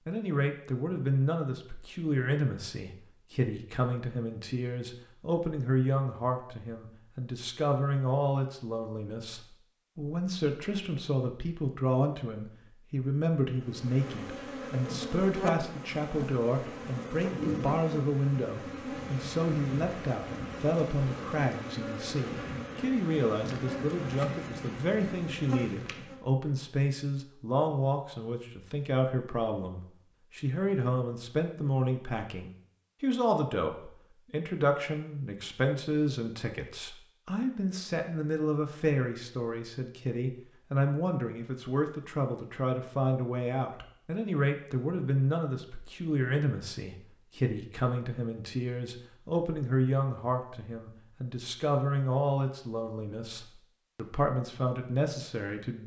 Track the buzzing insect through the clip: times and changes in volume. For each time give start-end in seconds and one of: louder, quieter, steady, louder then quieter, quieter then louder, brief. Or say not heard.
13.6-26.2 steady.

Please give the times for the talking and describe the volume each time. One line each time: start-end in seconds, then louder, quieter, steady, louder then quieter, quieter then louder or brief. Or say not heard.
0.1-55.8 steady.